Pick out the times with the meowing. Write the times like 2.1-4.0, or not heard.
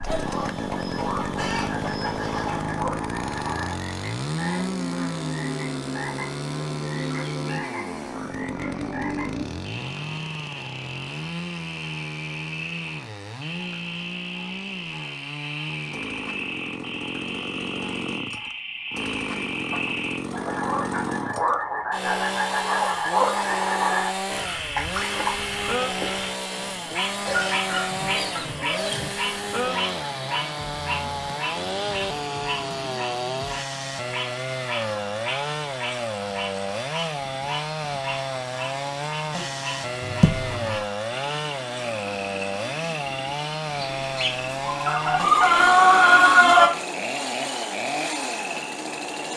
40.0-40.9.